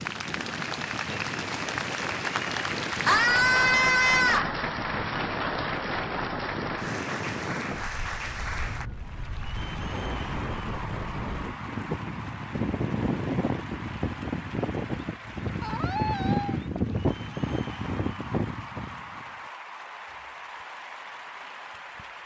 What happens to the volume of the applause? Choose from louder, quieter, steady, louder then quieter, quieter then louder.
quieter.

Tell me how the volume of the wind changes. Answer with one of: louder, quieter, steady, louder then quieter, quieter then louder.
louder.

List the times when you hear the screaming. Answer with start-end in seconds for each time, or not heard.
3.0-4.5, 15.6-16.6.